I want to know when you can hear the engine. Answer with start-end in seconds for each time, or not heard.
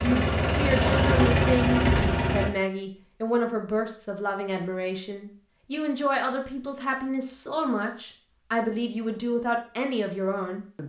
0.0-2.5.